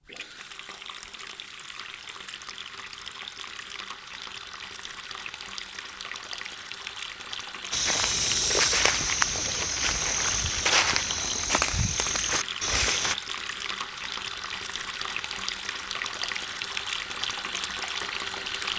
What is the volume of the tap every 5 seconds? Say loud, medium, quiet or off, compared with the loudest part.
medium, medium, loud, loud.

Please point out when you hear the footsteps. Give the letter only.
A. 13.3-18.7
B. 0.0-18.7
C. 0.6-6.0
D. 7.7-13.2
D.